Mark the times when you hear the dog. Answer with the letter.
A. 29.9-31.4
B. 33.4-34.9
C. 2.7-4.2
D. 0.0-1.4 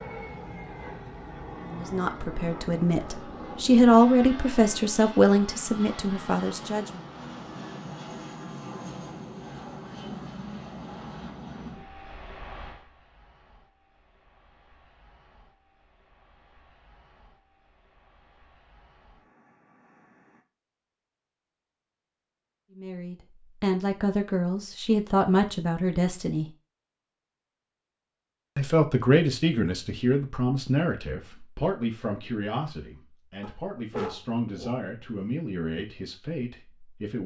B.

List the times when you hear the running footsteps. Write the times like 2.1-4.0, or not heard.
not heard.